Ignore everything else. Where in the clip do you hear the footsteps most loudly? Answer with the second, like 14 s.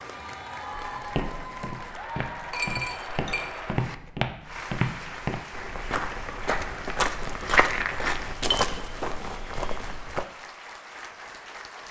8 s.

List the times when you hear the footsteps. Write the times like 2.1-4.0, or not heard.
0.8-10.2.